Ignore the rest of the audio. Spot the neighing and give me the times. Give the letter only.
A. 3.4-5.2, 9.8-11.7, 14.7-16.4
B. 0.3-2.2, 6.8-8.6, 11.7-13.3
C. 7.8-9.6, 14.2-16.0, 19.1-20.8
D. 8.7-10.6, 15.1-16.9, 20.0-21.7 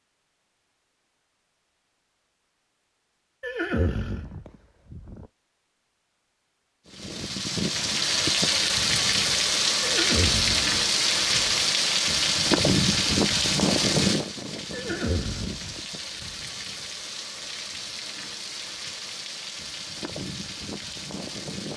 A.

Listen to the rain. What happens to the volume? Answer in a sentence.
The loudness of the rain goes down.